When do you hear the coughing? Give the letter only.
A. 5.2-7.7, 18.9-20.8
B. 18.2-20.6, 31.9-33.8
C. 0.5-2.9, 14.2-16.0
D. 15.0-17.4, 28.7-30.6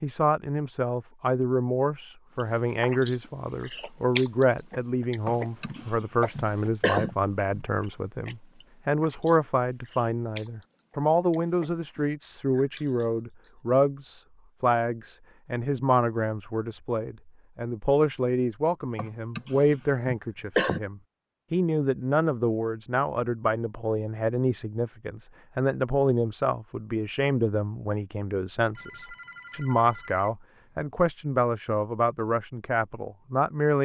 A.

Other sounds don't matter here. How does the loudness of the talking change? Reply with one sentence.
The loudness of the talking stays about the same.